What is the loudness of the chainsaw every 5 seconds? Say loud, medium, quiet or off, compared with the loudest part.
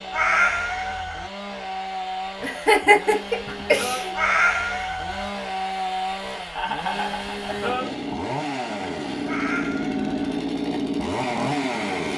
medium, loud, loud.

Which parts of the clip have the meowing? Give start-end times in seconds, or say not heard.
0.1-1.3, 4.2-5.3, 9.2-10.4.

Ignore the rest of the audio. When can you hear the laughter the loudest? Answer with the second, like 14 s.
3 s.